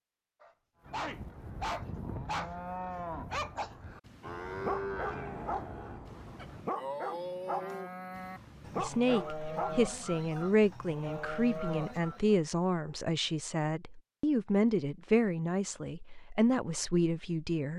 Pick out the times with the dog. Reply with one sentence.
You can hear the dog from 0.4 to 2.5 s and from 3.3 to 9.8 s.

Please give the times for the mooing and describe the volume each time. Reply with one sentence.
The mooing can be heard from 0.8 to 12.4 s, at a steady volume.